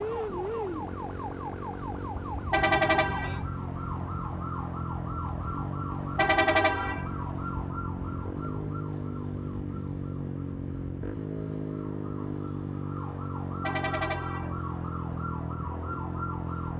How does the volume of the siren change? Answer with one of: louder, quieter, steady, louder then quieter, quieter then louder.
quieter then louder.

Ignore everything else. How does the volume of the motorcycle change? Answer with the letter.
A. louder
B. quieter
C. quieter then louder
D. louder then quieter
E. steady
E.